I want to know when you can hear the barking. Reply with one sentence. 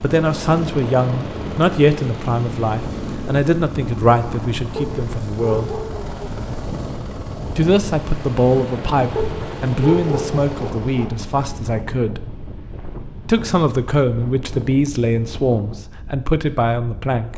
The barking can be heard from 4.8 to 6.3 s and from 9.2 to 11.1 s.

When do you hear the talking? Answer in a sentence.
You can hear the talking from 0.0 to 5.7 s, from 7.5 to 12.2 s and from 13.2 to 17.3 s.